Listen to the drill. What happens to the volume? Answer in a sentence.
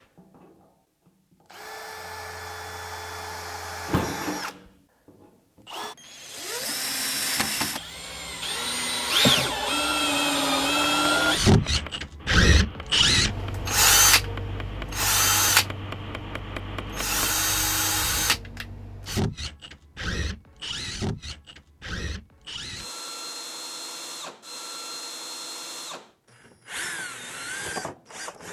The loudness of the drill goes up, then down.